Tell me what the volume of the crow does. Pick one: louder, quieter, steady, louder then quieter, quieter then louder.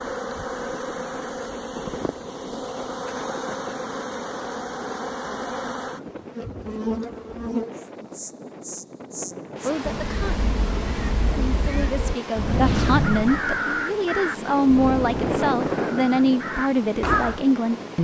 louder then quieter.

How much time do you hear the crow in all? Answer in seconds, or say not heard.
7 s.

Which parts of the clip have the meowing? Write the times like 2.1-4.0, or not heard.
9.8-11.8.